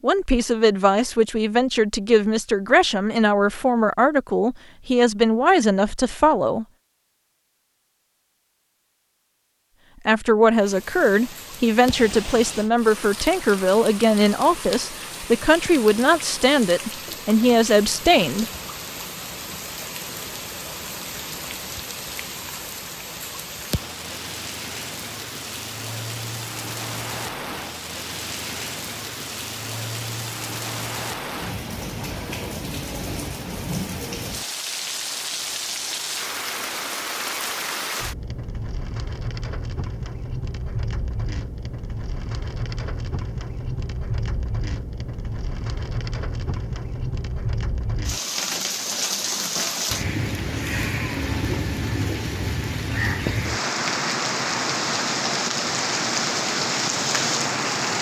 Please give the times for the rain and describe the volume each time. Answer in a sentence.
You can hear the rain from 10.6 to 57.9 s, getting louder.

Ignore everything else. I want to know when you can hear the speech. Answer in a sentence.
The speech can be heard from 0.0 to 6.7 s and from 10.1 to 18.4 s.